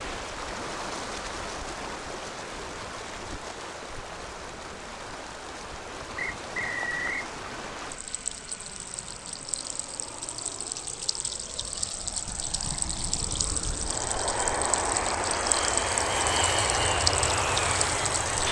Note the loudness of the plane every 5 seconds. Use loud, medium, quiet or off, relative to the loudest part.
quiet, quiet, medium, loud.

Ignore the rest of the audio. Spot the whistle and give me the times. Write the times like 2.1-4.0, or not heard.
6.2-7.3.